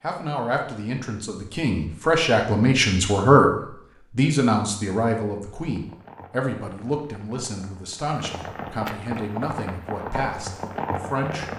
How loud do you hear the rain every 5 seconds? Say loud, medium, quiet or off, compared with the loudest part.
off, medium, loud.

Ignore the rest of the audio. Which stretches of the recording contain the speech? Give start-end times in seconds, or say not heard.
0.0-11.5.